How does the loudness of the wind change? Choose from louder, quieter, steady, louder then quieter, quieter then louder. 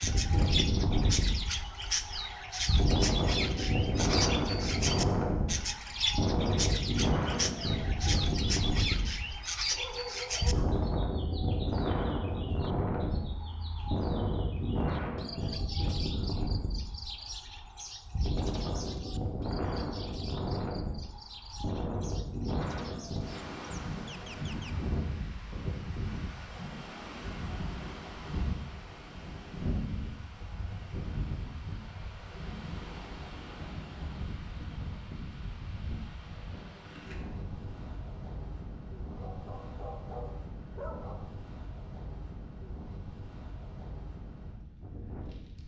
quieter.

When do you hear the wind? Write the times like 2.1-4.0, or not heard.
0.0-45.6.